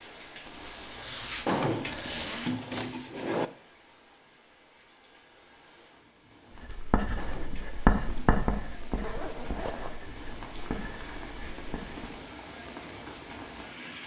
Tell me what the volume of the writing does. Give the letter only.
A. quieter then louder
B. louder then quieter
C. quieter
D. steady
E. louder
C.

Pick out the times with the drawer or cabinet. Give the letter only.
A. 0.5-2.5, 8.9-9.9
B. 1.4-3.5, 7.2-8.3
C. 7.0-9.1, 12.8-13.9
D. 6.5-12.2
B.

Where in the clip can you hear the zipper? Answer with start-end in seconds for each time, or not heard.
0.5-2.5, 8.9-9.9.